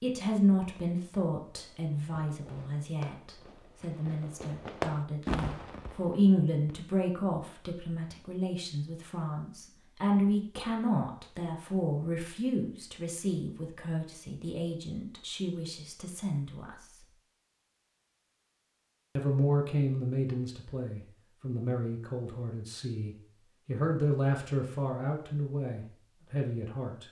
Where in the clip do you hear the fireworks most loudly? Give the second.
5 s.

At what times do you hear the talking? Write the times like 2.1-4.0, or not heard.
0.0-17.1, 19.1-27.0.